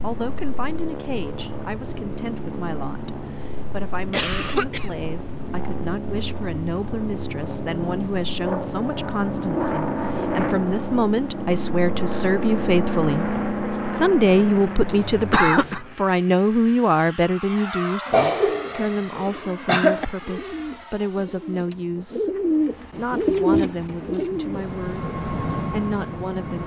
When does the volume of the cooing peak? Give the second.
23 s.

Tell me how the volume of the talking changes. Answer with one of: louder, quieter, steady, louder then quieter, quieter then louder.
louder then quieter.